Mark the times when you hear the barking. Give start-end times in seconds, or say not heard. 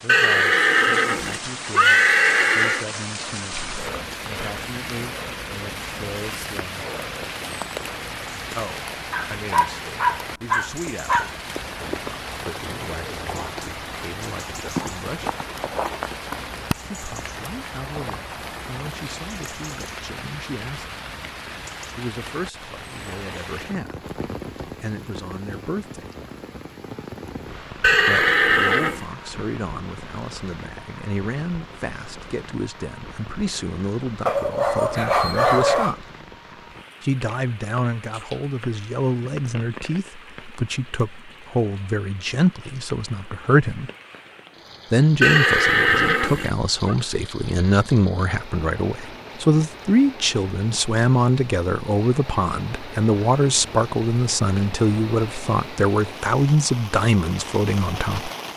9.1-11.3, 34.2-36.0.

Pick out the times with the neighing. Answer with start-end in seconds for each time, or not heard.
0.1-2.9, 27.8-29.1, 45.2-47.0.